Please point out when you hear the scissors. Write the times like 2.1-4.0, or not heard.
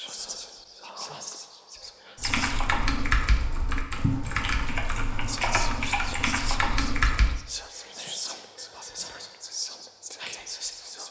not heard.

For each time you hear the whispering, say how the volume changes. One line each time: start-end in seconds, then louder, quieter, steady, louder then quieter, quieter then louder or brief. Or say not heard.
0.0-2.6 brief
5.2-11.0 steady.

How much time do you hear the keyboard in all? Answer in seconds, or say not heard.
5 s.